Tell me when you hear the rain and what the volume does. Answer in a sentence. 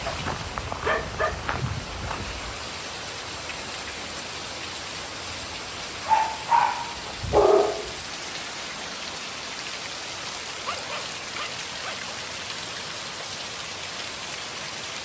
The rain can be heard from 0.0 to 15.0 s, at a steady volume.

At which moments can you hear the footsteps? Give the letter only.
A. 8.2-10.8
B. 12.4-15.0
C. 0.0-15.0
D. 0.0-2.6
D.